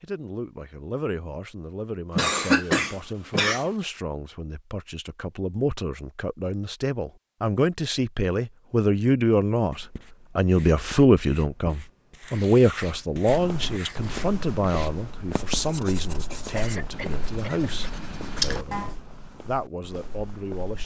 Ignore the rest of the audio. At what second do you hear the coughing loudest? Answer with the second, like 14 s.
3 s.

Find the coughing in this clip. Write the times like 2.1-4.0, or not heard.
2.1-3.6, 16.6-17.7.